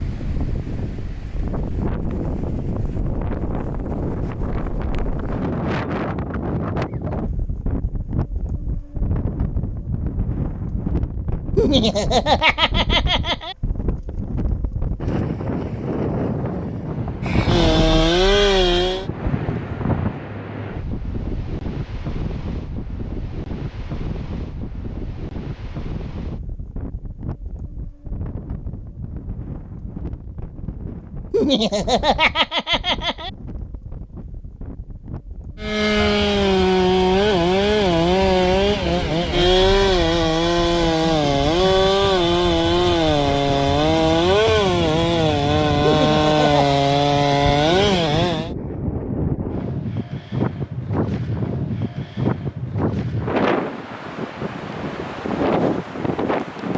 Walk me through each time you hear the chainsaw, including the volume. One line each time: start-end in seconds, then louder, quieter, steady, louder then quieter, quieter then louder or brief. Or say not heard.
17.2-19.1 brief
35.6-48.5 steady.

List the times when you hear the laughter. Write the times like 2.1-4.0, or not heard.
11.6-13.6, 31.3-33.3, 45.8-46.8.